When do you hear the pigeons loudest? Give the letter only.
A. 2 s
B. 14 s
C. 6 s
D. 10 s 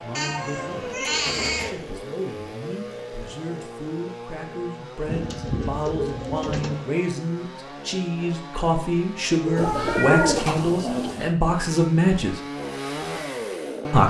D.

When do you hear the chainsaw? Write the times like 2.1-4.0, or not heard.
0.0-9.7, 11.3-14.0.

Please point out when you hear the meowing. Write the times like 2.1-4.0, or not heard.
0.1-1.8, 9.4-10.4.